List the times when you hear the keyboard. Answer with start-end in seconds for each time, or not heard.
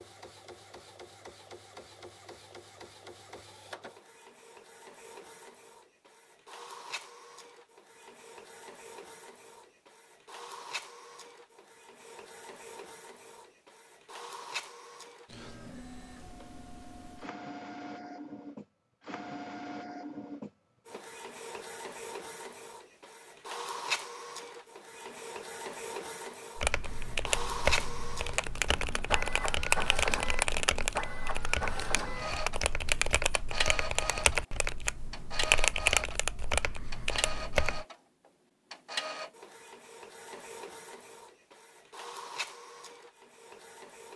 26.6-37.9.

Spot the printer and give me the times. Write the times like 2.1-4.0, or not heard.
0.0-44.1.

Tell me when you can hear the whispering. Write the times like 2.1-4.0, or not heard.
not heard.